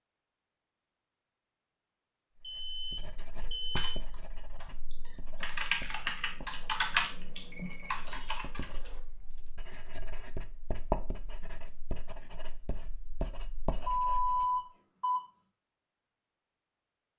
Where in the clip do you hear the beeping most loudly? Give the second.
14 s.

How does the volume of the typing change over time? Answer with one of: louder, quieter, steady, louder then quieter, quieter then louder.
louder then quieter.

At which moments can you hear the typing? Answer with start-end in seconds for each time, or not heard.
3.8-8.9.